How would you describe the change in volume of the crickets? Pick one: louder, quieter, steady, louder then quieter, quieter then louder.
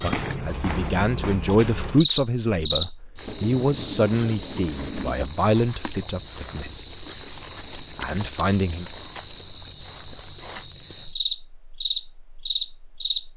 steady.